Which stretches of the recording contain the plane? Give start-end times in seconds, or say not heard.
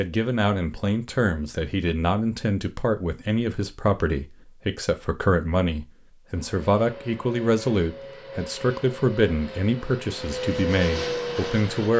6.3-11.9.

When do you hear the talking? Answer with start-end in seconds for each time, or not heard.
0.0-11.9.